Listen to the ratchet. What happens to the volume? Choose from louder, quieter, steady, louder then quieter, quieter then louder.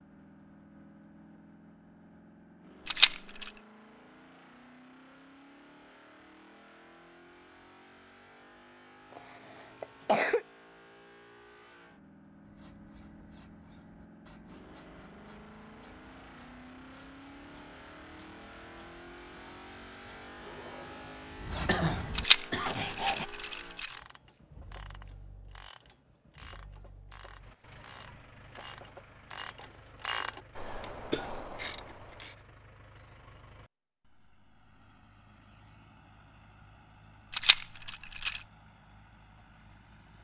louder.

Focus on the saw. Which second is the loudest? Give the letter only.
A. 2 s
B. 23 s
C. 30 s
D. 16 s
B.